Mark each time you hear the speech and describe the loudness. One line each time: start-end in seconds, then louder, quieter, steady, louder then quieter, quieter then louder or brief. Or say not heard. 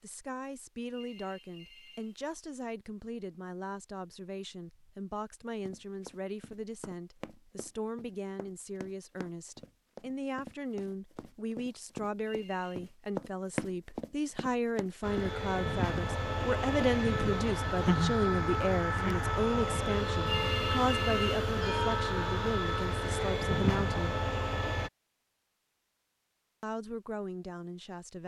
0.0-24.2 louder
26.6-28.2 brief.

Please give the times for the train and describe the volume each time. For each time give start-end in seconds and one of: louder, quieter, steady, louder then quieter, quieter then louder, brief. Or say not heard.
15.0-24.9 steady.